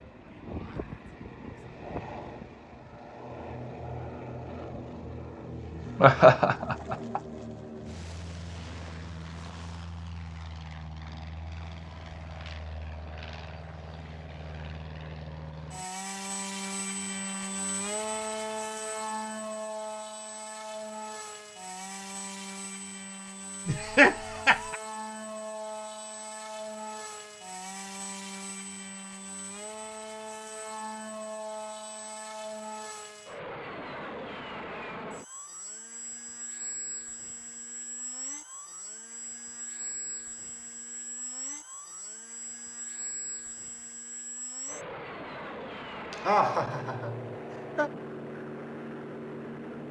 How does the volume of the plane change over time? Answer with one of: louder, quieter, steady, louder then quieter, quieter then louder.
steady.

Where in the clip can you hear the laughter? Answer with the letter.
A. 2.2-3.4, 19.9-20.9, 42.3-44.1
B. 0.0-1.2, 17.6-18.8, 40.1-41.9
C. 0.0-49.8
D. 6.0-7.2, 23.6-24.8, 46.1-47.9
D.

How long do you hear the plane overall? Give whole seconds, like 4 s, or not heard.
50 s.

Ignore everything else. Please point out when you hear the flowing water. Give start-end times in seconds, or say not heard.
not heard.